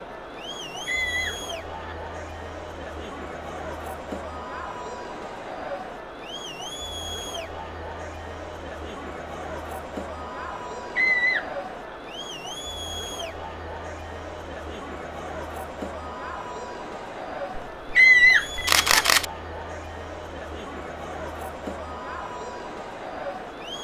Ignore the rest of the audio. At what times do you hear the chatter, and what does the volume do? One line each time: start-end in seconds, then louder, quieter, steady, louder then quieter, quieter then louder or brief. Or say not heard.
0.0-23.8 steady.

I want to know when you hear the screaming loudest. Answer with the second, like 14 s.
18 s.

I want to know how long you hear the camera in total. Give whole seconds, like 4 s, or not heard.
2 s.